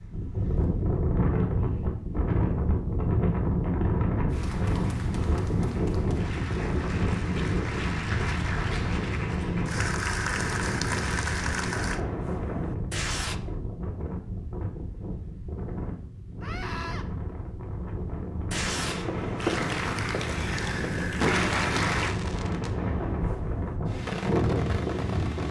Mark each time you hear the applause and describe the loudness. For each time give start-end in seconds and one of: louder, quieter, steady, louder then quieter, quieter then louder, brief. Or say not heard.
4.3-12.0 louder
19.4-22.1 brief.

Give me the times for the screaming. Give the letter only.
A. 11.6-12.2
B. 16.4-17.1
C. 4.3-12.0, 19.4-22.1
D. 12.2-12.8
B.